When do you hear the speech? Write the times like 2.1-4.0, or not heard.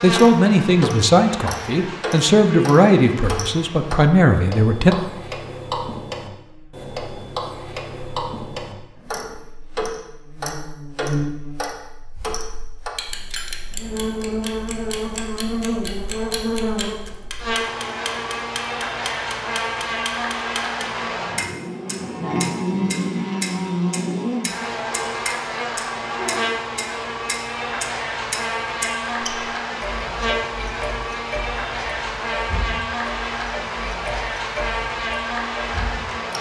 0.0-5.0.